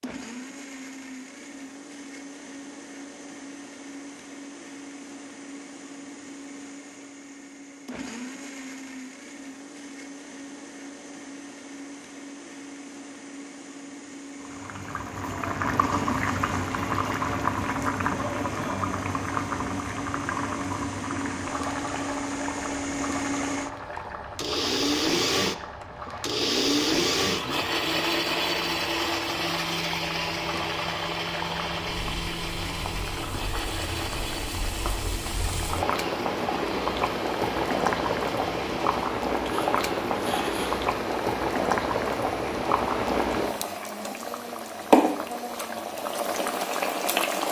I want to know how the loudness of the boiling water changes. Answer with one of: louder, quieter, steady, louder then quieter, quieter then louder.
quieter then louder.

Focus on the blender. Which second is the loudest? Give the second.
27 s.